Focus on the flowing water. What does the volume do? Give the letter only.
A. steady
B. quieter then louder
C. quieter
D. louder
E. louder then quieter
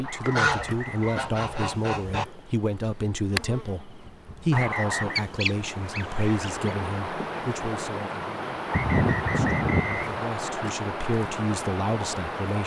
A.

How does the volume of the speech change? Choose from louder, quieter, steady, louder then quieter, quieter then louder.
quieter then louder.